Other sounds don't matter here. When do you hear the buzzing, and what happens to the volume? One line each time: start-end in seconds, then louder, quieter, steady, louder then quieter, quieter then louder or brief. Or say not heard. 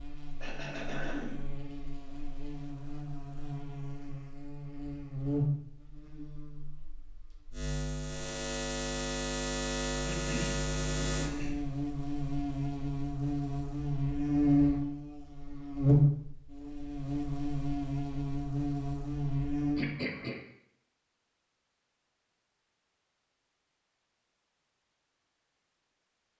0.0-19.9 louder.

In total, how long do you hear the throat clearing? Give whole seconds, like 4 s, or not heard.
3 s.